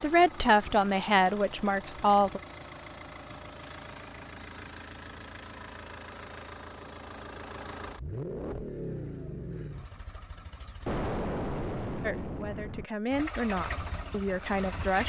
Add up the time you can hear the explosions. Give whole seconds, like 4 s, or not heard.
2 s.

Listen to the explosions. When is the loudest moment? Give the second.
11 s.